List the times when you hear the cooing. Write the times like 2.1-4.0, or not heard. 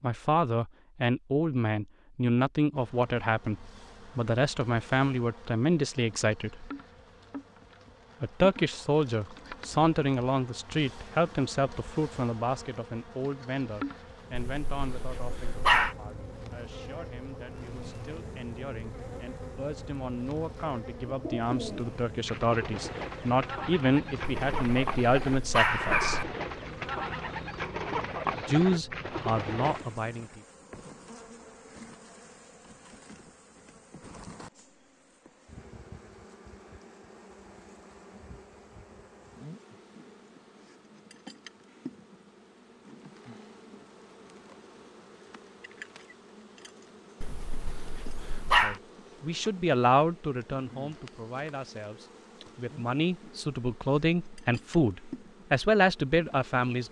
21.1-29.9.